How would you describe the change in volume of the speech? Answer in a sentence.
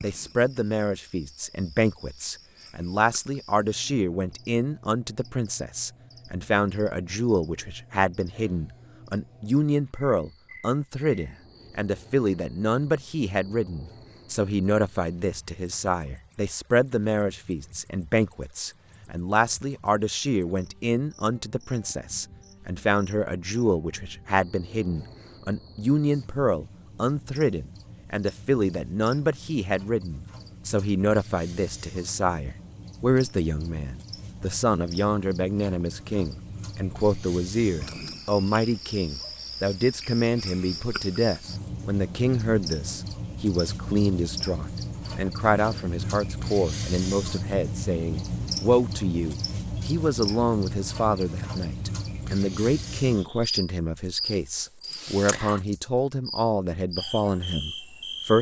The volume of the speech stays about the same.